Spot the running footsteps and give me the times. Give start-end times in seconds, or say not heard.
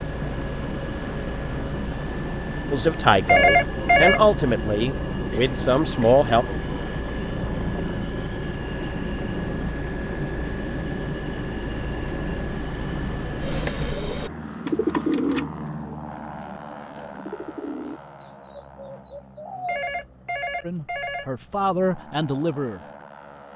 not heard.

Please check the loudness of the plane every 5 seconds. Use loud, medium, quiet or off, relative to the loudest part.
loud, loud, loud, medium, quiet.